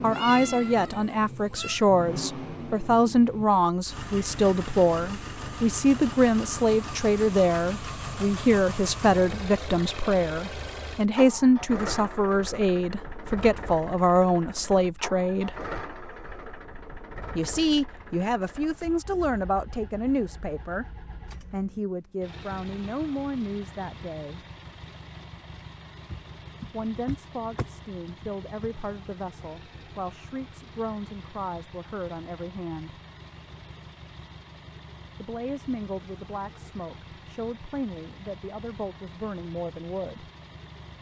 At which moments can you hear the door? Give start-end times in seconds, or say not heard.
26.1-28.7.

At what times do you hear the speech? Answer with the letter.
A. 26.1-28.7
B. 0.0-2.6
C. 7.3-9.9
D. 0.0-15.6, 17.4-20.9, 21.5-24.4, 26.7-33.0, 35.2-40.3
D.